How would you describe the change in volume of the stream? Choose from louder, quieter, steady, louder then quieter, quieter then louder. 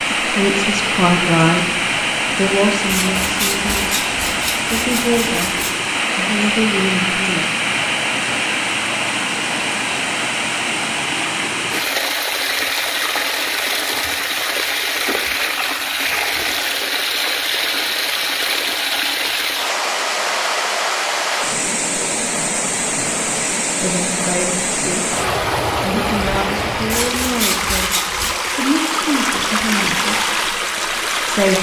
steady.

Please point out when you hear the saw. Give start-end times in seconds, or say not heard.
2.9-5.8, 26.9-28.4.